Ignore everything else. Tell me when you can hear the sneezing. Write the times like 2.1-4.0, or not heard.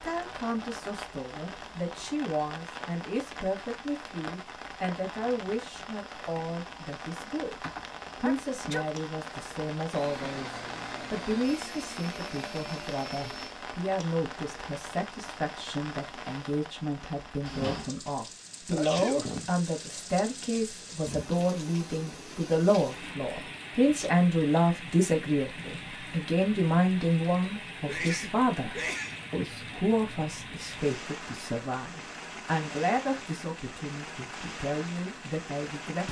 7.6-8.8, 18.7-19.5, 27.9-29.2.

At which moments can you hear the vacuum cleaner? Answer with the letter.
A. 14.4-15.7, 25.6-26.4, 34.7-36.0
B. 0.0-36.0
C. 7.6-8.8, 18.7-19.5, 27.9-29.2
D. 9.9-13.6
D.